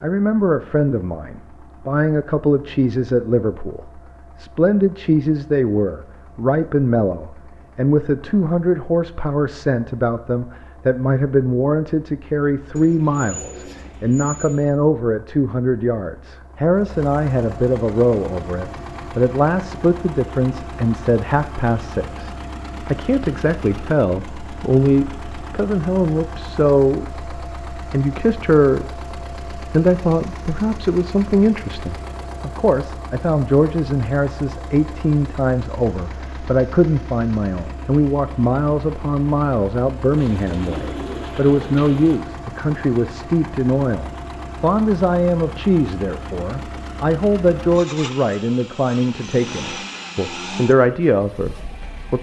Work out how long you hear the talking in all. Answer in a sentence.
You can hear the talking for 52 seconds altogether.